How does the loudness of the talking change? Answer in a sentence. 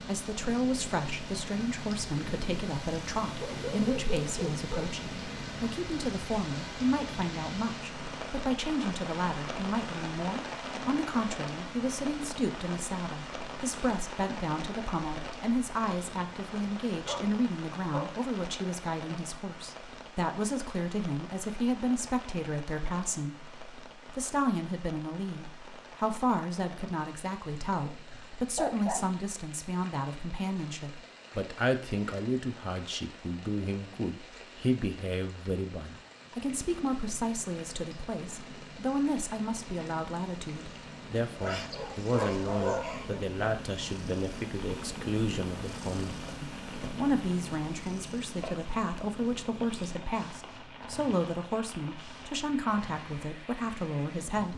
The volume of the talking stays about the same.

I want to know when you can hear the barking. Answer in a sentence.
The barking can be heard from 3.4 to 4.9 s, from 16.9 to 18.2 s, from 27.7 to 29.2 s and from 41.4 to 43.2 s.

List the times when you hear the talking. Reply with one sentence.
You can hear the talking from 0.0 to 54.5 s.